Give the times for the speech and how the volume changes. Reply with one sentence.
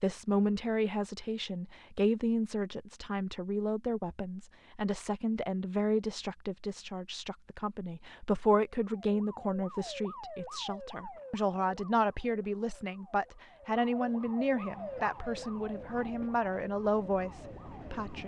You can hear the speech from 0.0 to 18.2 s, at a steady volume.